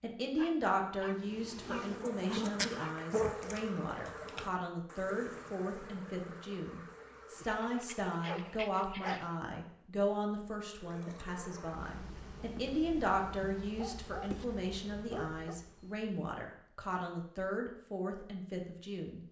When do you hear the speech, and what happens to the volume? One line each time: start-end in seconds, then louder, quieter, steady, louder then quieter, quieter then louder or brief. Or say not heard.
0.0-19.2 steady.